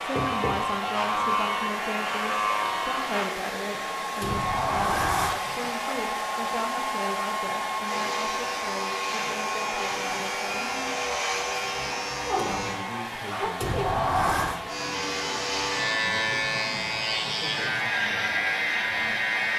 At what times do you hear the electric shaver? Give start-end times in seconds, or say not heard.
0.0-3.3, 7.8-12.8, 14.7-19.5.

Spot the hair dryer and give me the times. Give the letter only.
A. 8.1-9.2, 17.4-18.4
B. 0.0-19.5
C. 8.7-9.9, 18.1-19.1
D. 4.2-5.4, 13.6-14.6
B.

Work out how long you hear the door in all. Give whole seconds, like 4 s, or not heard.
2 s.